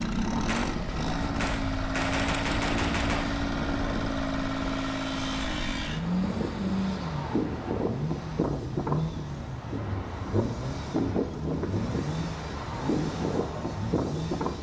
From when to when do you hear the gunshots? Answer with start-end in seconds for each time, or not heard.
0.5-3.5.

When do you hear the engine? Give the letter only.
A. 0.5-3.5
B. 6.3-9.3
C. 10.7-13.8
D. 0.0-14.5
D.